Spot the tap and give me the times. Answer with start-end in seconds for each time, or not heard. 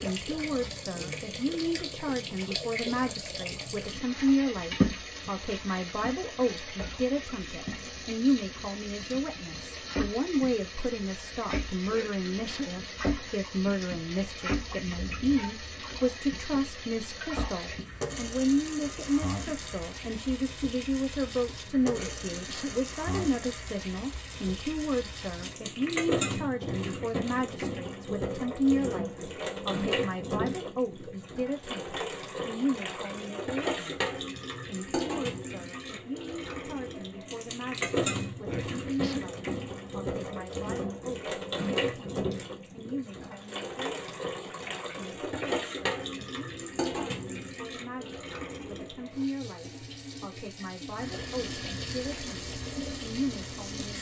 0.0-53.9.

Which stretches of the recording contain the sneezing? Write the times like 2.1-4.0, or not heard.
11.9-12.7, 21.9-22.8, 38.5-39.2.